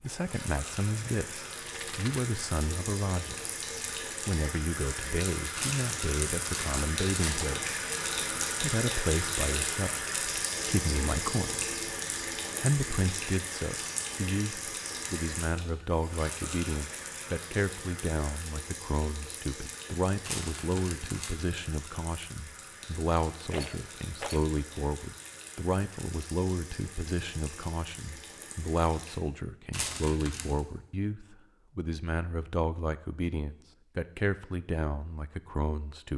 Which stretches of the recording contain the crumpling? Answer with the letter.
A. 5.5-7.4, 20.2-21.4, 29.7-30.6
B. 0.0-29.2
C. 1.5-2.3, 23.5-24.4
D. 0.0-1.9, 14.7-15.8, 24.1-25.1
A.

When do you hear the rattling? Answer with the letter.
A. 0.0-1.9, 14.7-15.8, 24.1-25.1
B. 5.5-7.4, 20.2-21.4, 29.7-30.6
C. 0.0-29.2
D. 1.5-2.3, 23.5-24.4
D.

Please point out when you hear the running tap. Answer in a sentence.
The running tap can be heard from 0.0 to 29.2 s.